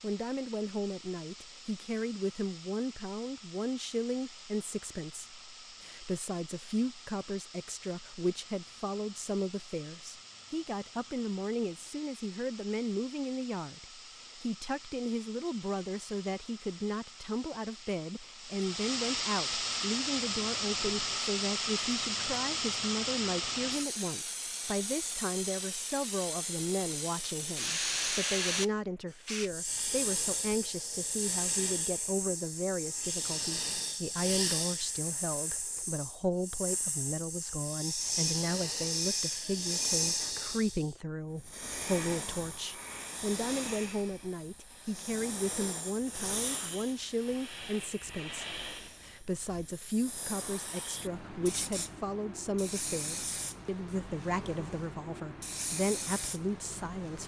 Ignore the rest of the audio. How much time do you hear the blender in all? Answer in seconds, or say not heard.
not heard.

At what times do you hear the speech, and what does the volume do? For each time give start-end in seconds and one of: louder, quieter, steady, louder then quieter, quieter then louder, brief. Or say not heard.
0.0-57.2 steady.